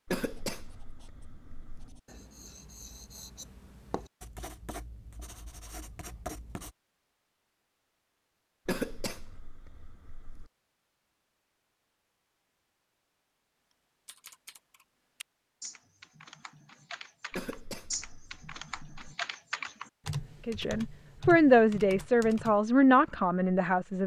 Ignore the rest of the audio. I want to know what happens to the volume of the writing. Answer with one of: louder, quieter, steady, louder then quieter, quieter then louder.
louder.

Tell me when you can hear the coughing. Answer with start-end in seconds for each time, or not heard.
0.1-1.9, 8.7-10.5, 17.3-19.1.